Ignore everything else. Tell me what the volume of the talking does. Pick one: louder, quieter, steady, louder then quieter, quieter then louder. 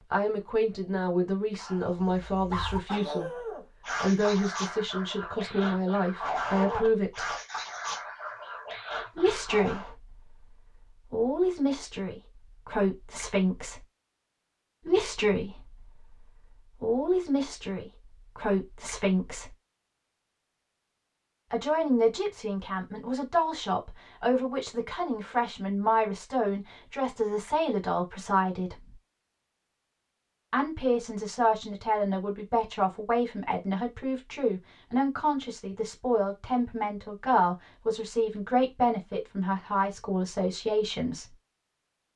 steady.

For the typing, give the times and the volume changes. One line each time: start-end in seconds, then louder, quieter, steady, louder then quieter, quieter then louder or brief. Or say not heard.
not heard.